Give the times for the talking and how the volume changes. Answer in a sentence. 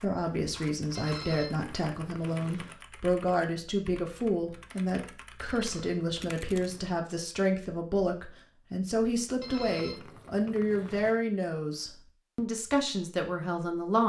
The talking can be heard from 0.0 to 14.0 s, at a steady volume.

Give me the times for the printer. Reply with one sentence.
You can't hear the printer here.